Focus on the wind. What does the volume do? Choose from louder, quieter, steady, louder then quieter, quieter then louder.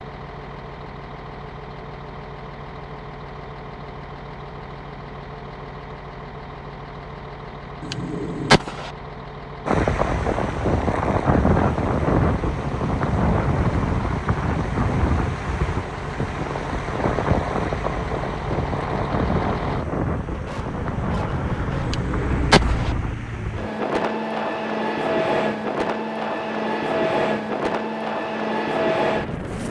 quieter.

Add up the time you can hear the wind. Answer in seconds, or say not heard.
20 s.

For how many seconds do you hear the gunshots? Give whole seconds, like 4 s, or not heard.
2 s.